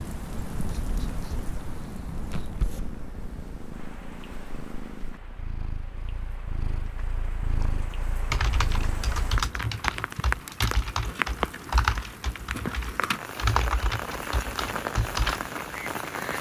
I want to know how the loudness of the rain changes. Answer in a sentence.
The volume of the rain goes down, then up.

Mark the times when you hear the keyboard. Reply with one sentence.
The keyboard can be heard from 8.3 to 15.5 s.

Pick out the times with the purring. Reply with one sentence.
You can hear the purring from 0.0 to 9.2 s.